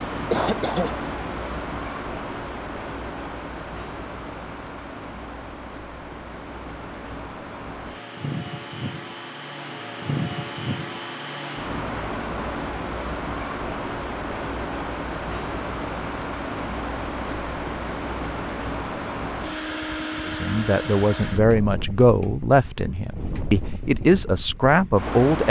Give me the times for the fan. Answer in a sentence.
The fan can be heard from 0.0 to 25.4 s.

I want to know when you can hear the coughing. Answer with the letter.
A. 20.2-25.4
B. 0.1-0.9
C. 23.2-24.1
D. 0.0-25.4
B.